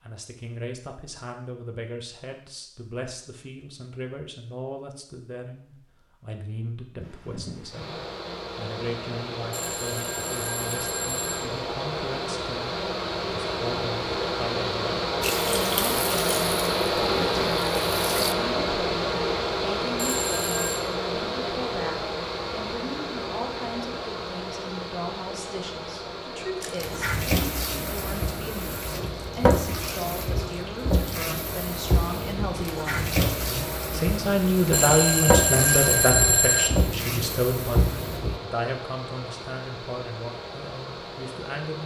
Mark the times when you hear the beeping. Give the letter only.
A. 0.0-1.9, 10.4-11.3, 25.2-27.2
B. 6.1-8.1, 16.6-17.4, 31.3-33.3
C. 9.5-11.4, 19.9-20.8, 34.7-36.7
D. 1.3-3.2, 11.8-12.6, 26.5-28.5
C.